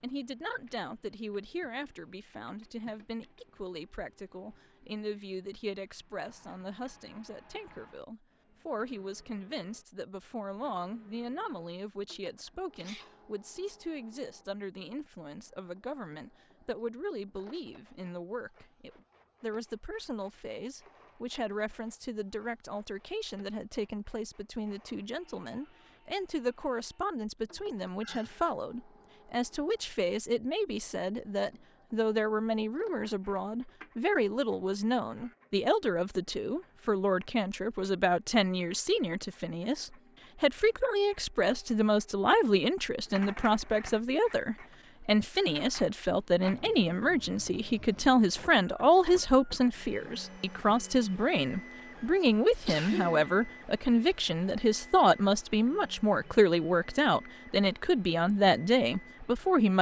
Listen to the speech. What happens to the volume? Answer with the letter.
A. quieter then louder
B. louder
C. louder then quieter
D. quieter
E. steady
B.